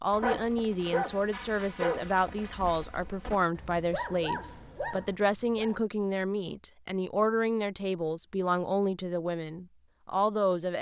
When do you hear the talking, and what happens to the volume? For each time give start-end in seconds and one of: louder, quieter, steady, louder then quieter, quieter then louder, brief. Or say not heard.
0.0-10.7 steady.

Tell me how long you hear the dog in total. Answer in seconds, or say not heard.
6 s.